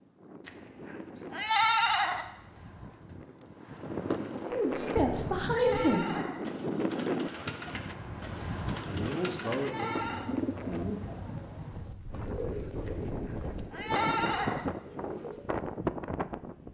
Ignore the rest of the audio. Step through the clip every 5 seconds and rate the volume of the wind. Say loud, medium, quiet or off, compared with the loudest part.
medium, loud, loud, loud.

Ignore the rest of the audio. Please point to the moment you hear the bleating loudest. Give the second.
2 s.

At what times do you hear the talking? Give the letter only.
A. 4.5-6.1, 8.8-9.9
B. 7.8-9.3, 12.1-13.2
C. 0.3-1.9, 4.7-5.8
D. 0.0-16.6
A.